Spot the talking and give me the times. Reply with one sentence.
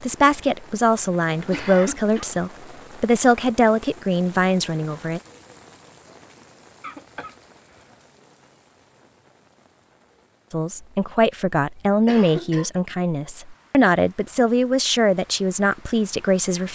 The talking can be heard from 0.0 to 5.2 s and from 10.5 to 16.7 s.